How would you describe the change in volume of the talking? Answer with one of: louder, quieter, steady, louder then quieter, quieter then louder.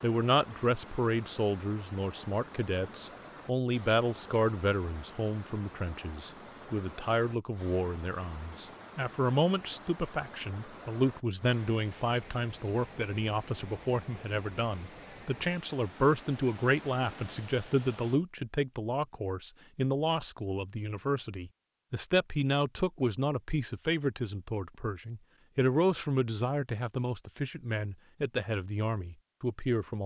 steady.